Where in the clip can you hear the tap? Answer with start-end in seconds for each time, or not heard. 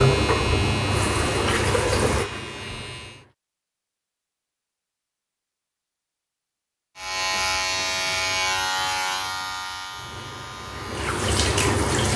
0.0-3.4, 9.9-12.1.